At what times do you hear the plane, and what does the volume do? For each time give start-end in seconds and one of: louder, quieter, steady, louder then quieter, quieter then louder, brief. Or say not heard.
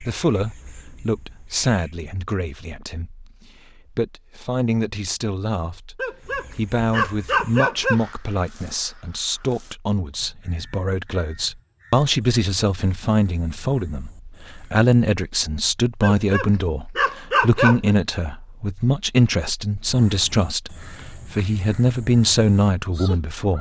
not heard.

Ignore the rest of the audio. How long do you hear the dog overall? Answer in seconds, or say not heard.
4 s.